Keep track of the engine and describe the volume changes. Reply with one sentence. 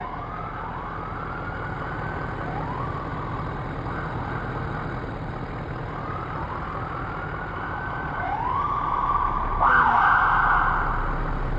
The volume of the engine stays about the same.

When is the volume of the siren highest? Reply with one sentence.
The loudest moment of the siren is at 10 seconds.